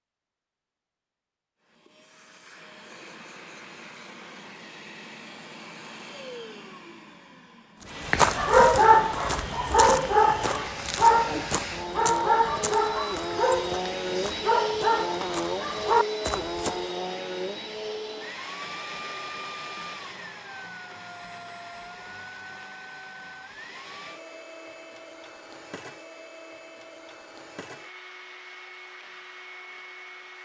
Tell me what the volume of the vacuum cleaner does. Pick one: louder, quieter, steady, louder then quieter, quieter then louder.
louder then quieter.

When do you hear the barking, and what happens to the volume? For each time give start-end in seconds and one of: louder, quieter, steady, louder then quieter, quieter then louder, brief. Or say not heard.
8.1-16.8 quieter.